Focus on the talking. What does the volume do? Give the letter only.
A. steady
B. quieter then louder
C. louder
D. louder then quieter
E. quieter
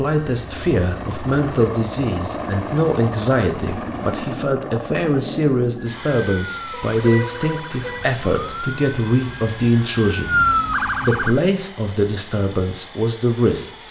A.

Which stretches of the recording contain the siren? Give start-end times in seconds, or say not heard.
5.8-11.3.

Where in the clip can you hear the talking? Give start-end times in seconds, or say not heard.
0.0-13.8.